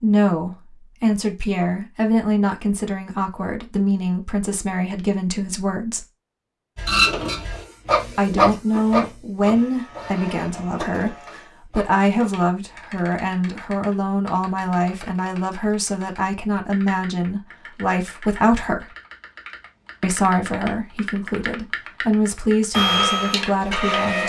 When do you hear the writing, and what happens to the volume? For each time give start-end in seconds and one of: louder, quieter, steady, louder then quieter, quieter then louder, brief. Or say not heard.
not heard.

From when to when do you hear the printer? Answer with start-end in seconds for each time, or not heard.
6.8-12.1, 22.7-24.2.